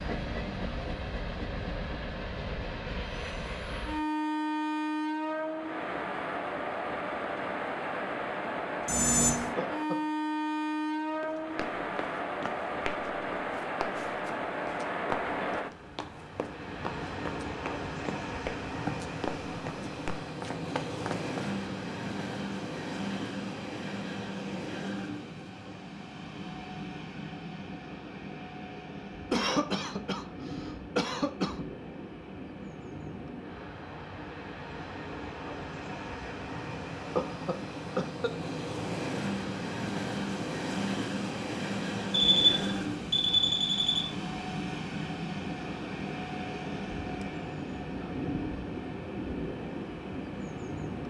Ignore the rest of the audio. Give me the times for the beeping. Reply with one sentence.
You can hear the beeping from 8.8 to 9.5 s and from 42.1 to 44.0 s.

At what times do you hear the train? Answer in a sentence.
The train can be heard from 0.0 to 51.0 s.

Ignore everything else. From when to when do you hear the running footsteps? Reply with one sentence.
The running footsteps can be heard from 11.2 to 21.5 s.